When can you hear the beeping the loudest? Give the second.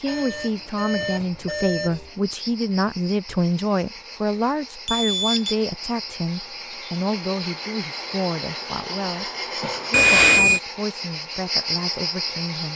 10 s.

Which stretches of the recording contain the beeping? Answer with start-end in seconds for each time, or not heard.
0.1-2.1, 4.8-5.5, 9.9-10.6.